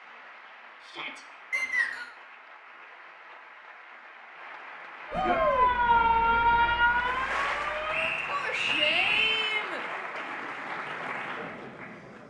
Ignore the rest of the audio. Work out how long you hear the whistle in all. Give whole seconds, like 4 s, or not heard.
2 s.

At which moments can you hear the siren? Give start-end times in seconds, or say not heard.
5.1-8.2.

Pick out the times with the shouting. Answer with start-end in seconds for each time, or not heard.
0.8-1.2, 5.1-5.7, 8.3-9.8.